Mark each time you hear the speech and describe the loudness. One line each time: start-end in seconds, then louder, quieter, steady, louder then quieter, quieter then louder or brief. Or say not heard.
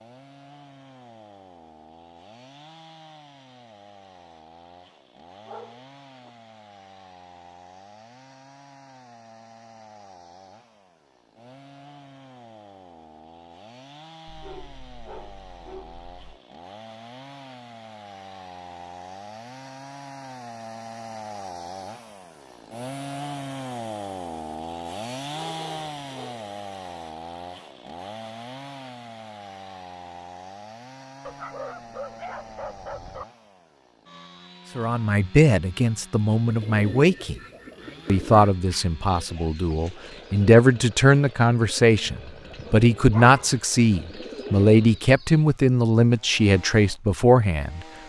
34.8-37.4 brief
38.0-47.9 louder.